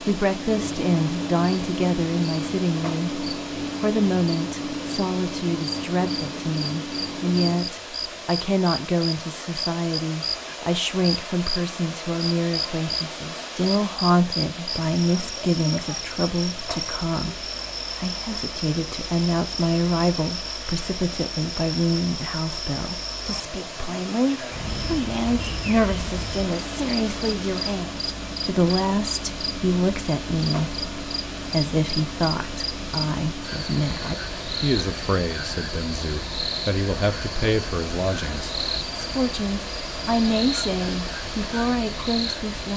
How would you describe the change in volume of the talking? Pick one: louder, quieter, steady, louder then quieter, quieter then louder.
steady.